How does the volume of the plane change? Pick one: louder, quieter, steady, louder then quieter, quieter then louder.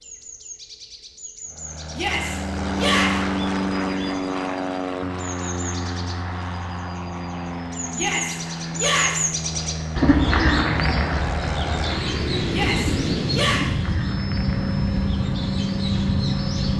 quieter then louder.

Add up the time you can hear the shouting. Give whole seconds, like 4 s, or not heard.
4 s.